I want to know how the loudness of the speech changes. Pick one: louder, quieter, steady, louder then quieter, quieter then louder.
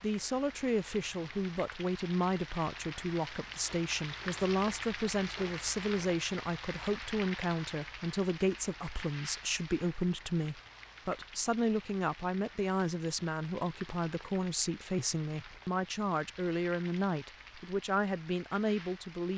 steady.